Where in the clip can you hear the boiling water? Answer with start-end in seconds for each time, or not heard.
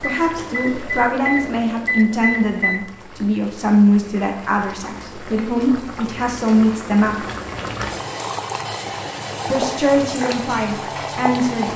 0.0-11.7.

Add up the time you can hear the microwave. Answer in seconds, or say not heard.
3 s.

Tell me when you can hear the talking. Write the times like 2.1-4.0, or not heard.
0.0-7.2, 9.5-11.7.